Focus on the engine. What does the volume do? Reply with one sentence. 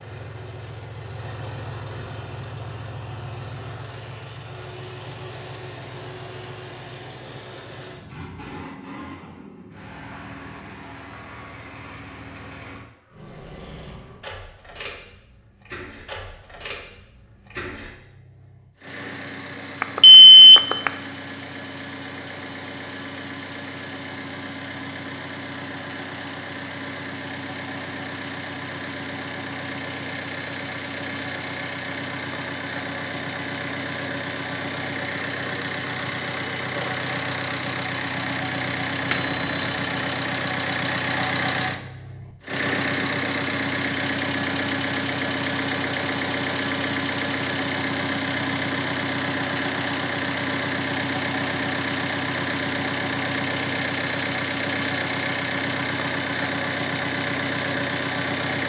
The volume of the engine goes up.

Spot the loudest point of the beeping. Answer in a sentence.
The loudest moment of the beeping is at 20 seconds.